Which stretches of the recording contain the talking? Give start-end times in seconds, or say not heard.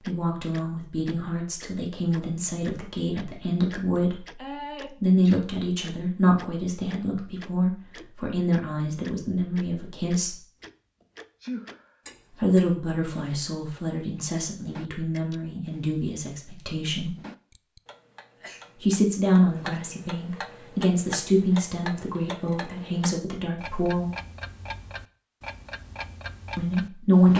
0.0-10.4, 12.3-17.1, 18.8-24.1, 26.6-27.3.